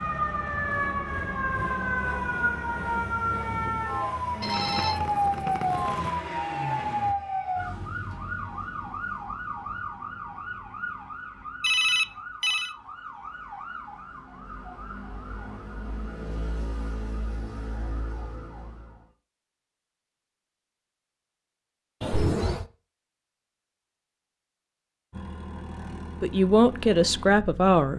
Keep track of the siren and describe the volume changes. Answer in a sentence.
The volume of the siren goes down.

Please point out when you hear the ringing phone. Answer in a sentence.
The ringing phone can be heard from 4.4 to 6.2 s, from 11.6 to 12.8 s and from 22.0 to 22.6 s.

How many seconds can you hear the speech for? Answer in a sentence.
The speech can be heard for 2 seconds in total.